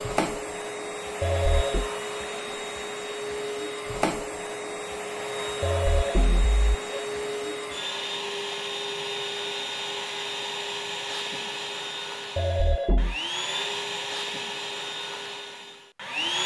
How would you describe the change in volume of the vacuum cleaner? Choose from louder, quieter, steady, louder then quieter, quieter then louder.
steady.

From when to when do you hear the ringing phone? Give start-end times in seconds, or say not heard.
1.2-1.9, 5.6-7.0, 12.3-13.2.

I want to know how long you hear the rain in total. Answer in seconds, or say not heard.
not heard.